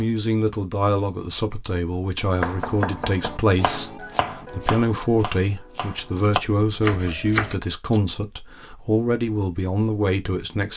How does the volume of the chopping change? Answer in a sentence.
The volume of the chopping goes down, then up.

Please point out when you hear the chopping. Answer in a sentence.
The chopping can be heard from 2.4 to 8.0 s.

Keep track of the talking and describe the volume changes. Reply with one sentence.
The loudness of the talking stays about the same.